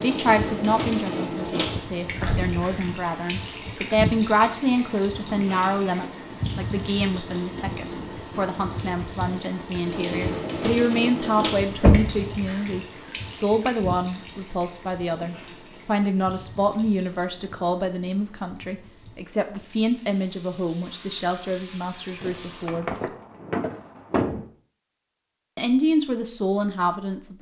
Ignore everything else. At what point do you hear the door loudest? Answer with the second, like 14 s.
12 s.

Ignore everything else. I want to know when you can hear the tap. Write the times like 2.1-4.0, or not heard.
0.0-22.8.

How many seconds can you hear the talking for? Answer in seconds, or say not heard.
25 s.